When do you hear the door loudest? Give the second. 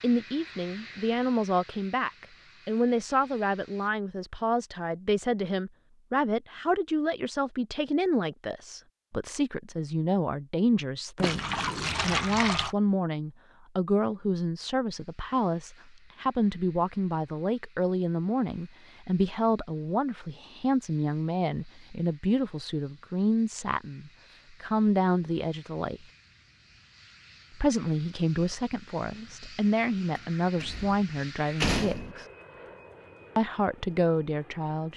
32 s.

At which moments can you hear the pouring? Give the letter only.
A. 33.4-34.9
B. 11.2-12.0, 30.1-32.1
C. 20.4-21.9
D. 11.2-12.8
D.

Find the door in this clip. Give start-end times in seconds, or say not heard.
11.2-12.0, 30.1-32.1.